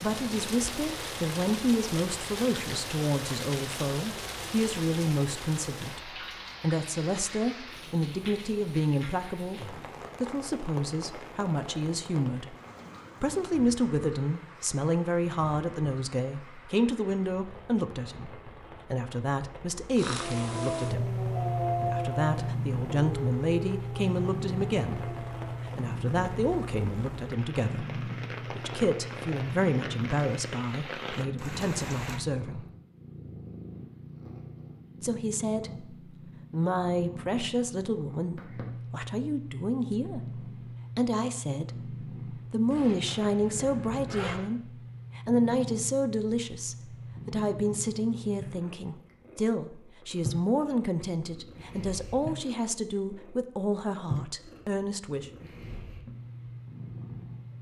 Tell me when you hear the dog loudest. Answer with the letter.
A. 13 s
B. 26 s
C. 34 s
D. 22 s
D.